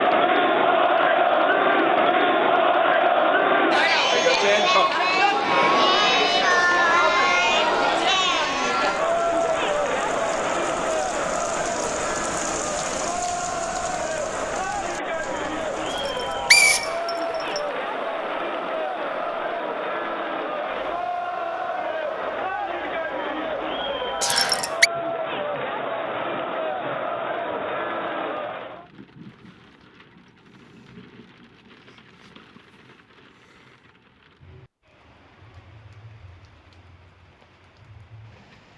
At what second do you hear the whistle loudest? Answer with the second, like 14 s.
17 s.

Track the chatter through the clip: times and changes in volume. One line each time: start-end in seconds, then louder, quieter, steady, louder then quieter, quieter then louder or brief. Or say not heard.
0.0-28.9 quieter.